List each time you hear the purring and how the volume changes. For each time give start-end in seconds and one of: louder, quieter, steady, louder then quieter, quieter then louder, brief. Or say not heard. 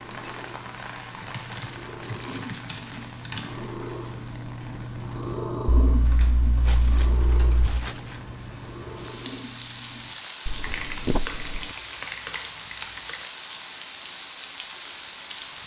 0.0-10.2 louder then quieter.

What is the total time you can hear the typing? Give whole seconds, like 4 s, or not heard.
7 s.